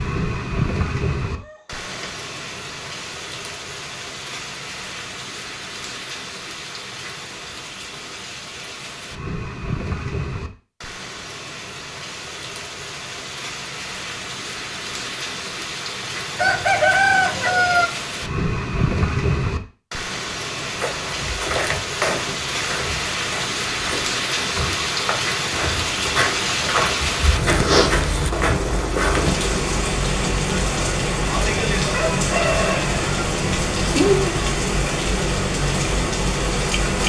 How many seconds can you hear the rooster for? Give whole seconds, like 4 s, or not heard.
4 s.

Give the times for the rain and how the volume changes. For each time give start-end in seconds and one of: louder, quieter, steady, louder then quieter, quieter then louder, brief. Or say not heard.
0.0-37.0 louder.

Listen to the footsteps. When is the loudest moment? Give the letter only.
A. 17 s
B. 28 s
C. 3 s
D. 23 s
B.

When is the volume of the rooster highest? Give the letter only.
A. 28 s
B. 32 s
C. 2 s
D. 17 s
D.